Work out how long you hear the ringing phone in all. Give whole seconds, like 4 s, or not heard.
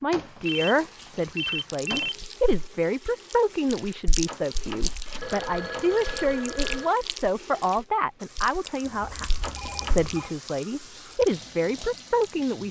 5 s.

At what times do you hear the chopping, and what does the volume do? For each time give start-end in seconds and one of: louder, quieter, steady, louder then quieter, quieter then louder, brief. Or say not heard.
not heard.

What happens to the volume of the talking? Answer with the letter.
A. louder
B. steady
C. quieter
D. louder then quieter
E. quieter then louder
B.